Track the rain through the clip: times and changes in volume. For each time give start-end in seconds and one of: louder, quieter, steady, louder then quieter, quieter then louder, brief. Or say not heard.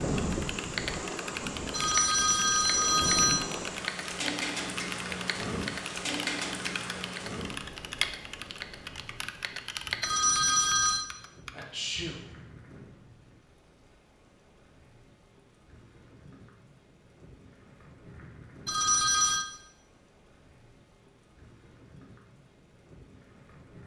0.0-23.8 quieter.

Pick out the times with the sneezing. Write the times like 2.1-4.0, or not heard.
11.5-12.2.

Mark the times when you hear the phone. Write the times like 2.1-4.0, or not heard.
1.7-3.5, 10.0-11.1, 18.6-19.4.